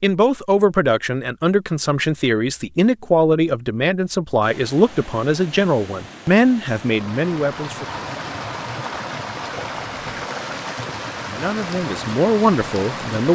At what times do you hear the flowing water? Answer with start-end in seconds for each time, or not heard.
4.4-13.3.